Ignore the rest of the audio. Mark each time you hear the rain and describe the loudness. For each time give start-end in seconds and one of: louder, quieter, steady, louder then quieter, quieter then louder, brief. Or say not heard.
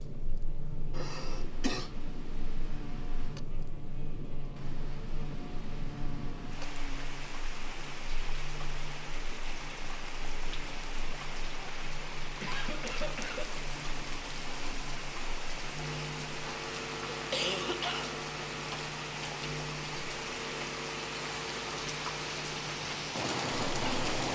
0.0-24.3 louder.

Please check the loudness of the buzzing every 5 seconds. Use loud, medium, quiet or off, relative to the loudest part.
medium, medium, medium, loud, loud.